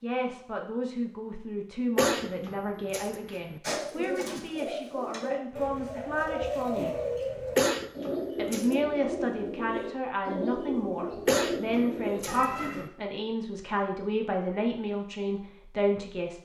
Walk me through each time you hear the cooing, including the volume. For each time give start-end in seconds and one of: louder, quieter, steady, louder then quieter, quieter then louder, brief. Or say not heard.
3.6-12.8 steady.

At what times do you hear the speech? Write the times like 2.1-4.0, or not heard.
0.0-6.9, 8.3-16.4.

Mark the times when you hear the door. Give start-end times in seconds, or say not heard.
not heard.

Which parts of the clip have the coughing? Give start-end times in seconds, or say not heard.
1.9-3.6, 7.5-8.8, 11.2-12.9.